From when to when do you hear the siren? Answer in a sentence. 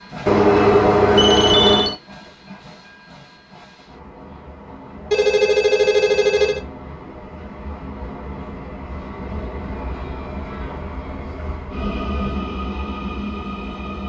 The siren can't be heard in this clip.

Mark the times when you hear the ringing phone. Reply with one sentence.
You can hear the ringing phone from 0.2 to 1.9 s, from 5.1 to 6.7 s and from 11.8 to 12.4 s.